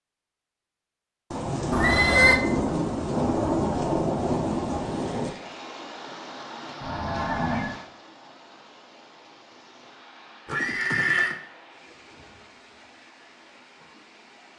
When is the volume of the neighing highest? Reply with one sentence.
The loudest moment of the neighing is at 2 seconds.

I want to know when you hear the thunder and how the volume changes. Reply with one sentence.
You can hear the thunder from 1.3 to 5.3 s, at a steady volume.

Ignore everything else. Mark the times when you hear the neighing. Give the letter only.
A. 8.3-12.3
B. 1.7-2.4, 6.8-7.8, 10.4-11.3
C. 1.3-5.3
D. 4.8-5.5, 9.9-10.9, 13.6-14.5
B.